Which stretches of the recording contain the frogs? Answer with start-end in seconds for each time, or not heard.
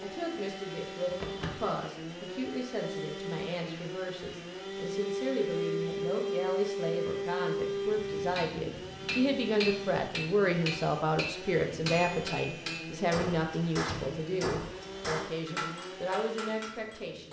not heard.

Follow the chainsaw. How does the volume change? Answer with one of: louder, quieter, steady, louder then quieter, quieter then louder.
louder then quieter.